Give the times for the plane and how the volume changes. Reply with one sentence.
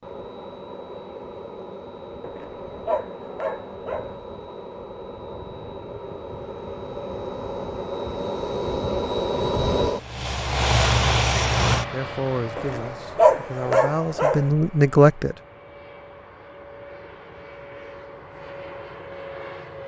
You can hear the plane from 0.0 to 19.8 s, getting louder then quieter.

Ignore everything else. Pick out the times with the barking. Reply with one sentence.
The barking can be heard from 2.2 to 4.2 s and from 12.6 to 14.5 s.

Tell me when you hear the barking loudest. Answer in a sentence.
The loudest moment of the barking is at 13 seconds.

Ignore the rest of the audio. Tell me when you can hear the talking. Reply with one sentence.
The talking can be heard from 11.9 to 15.3 s.